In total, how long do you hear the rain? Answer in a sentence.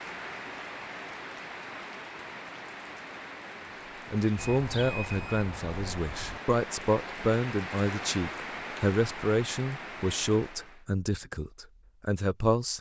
You can hear the rain for 11 seconds altogether.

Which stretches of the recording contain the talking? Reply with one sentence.
You can hear the talking from 4.1 to 12.7 s.